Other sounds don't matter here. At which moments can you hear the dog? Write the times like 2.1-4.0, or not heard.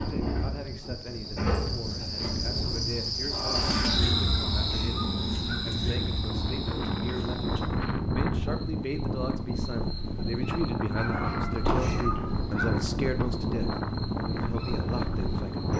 3.9-5.7, 10.9-12.8.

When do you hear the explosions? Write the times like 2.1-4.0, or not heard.
11.7-12.1.